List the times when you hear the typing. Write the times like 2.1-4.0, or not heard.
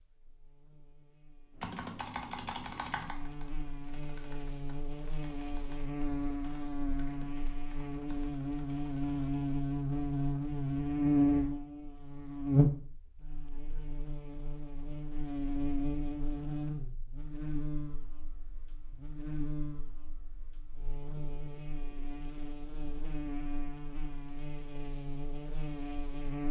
1.6-9.4.